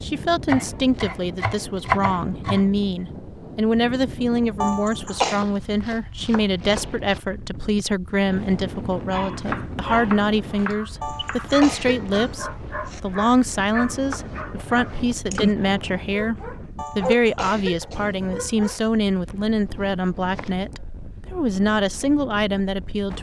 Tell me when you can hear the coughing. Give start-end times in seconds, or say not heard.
4.6-5.4, 11.0-13.0, 16.8-18.8.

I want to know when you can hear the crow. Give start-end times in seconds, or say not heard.
not heard.